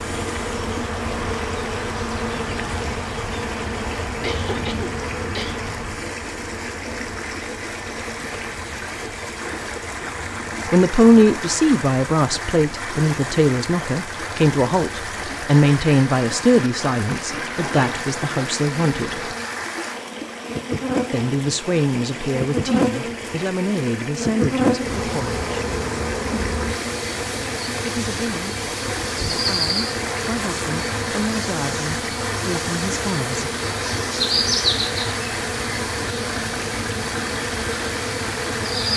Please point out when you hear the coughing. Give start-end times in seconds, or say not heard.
4.2-5.6.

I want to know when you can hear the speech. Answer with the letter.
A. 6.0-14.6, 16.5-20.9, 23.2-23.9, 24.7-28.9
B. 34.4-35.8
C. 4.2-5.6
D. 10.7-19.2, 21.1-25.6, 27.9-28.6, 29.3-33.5
D.